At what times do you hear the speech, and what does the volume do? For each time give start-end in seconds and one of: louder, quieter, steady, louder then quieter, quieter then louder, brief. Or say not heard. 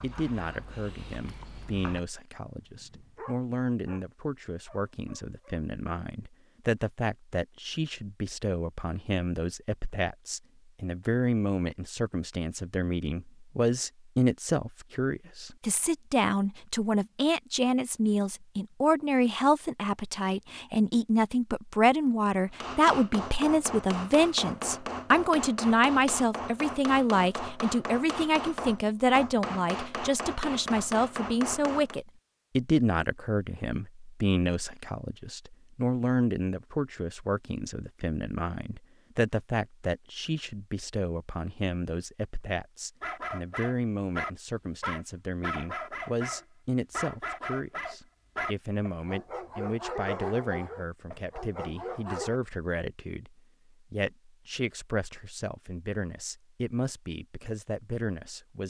0.0-58.6 louder then quieter.